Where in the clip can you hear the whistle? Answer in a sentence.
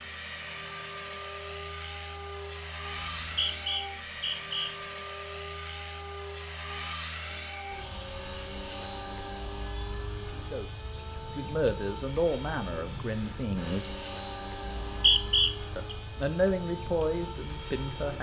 The whistle can be heard from 3.0 to 4.7 s and from 14.7 to 15.9 s.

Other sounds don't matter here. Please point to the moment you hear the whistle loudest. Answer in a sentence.
The volume of the whistle peaks at 15 seconds.